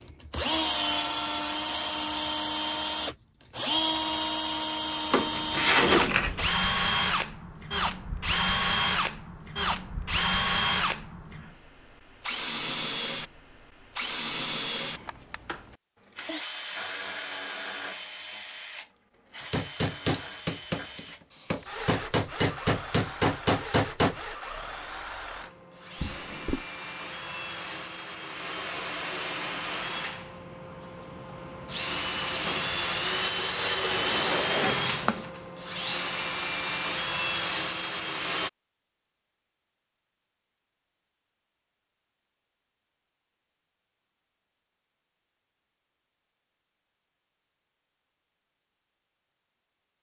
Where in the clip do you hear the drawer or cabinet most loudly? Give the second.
6 s.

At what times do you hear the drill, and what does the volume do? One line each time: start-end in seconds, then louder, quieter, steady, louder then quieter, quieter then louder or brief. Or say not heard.
0.0-38.5 quieter then louder.